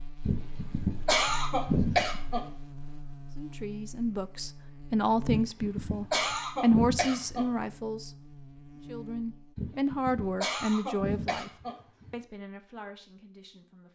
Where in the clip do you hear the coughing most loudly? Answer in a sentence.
The loudest moment of the coughing is at 2 seconds.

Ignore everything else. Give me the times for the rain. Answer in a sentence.
You can't hear the rain here.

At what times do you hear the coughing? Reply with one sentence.
You can hear the coughing from 0.2 to 2.5 s, from 5.2 to 7.5 s and from 9.6 to 12.1 s.